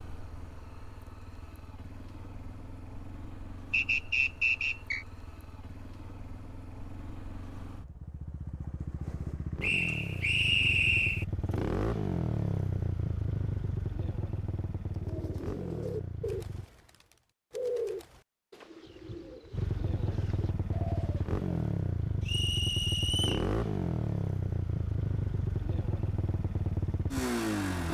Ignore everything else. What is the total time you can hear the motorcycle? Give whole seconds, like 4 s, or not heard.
25 s.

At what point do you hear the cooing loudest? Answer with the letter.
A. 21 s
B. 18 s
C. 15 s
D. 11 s
B.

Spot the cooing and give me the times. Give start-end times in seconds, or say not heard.
14.9-21.4.